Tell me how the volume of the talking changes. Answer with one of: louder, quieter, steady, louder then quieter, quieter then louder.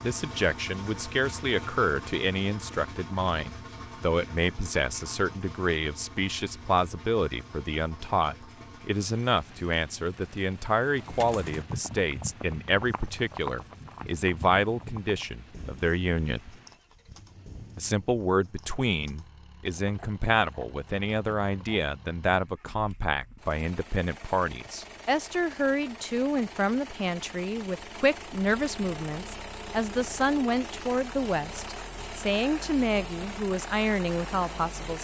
steady.